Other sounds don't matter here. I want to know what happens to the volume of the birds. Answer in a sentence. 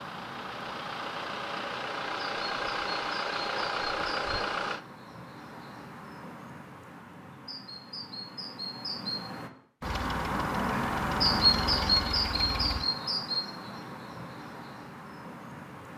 The volume of the birds goes up, then down.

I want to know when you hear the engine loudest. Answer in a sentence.
The loudest moment of the engine is at 4 seconds.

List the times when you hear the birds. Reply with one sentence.
You can hear the birds from 0.0 to 15.9 s.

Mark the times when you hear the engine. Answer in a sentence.
The engine can be heard from 0.0 to 4.8 s and from 9.8 to 12.8 s.